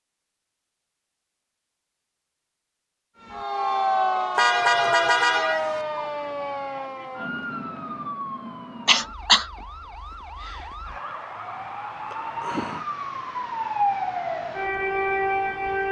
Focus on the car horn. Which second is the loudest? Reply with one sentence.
The volume of the car horn peaks at 5 seconds.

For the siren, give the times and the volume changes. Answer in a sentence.
The siren can be heard from 3.2 to 15.8 s, getting quieter then louder.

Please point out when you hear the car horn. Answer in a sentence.
The car horn can be heard from 4.3 to 5.8 s.